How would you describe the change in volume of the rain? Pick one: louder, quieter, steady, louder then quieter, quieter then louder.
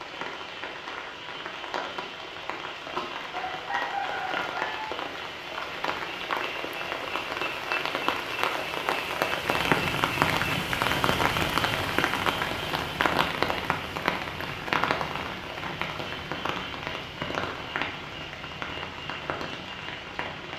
louder then quieter.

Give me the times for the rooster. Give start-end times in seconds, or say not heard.
3.3-4.8.